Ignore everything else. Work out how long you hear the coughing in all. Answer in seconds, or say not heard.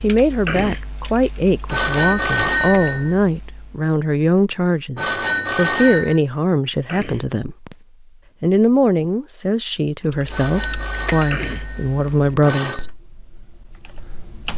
3 s.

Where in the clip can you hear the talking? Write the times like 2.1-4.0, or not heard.
0.0-7.8, 8.4-12.8.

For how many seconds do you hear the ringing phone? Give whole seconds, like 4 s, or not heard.
5 s.